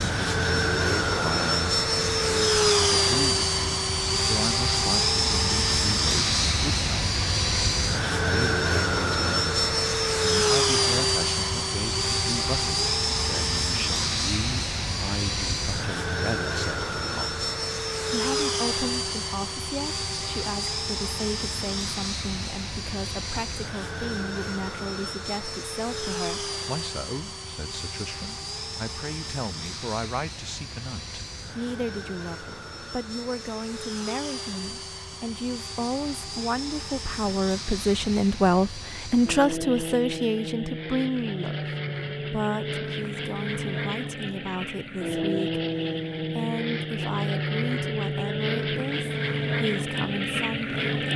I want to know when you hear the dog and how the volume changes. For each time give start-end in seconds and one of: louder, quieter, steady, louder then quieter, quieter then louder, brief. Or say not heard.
not heard.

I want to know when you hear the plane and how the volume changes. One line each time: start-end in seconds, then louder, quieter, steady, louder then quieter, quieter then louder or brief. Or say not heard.
0.0-51.1 quieter then louder.